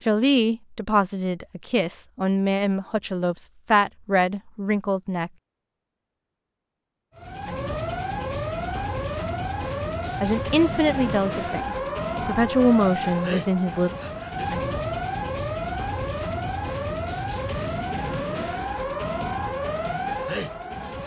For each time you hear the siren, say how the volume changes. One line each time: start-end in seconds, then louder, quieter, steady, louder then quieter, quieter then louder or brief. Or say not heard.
7.2-21.0 steady.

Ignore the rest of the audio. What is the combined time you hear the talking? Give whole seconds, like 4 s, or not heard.
9 s.